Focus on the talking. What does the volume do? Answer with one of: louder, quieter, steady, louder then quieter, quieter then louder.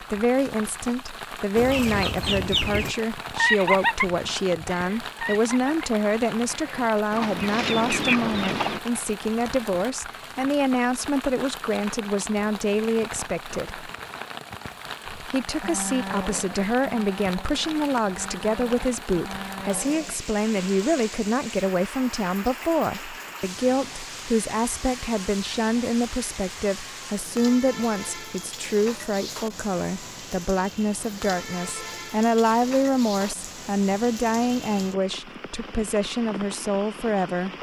steady.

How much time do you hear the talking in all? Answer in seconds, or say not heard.
36 s.